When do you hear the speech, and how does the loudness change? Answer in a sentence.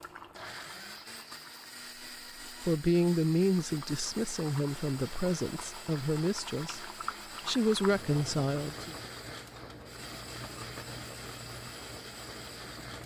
You can hear the speech from 2.5 to 8.9 s, getting quieter then louder.